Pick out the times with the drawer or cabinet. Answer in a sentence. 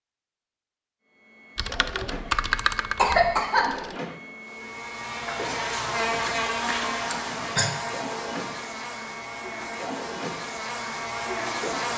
You can't hear the drawer or cabinet here.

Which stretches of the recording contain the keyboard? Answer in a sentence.
You can hear the keyboard from 1.6 to 4.0 s.